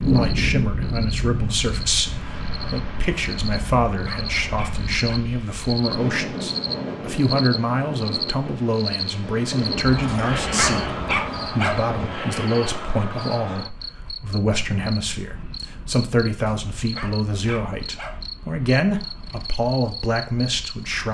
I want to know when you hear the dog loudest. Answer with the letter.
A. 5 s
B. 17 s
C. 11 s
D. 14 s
C.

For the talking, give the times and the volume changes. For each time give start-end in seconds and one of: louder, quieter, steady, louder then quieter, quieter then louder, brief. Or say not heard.
0.0-21.0 steady.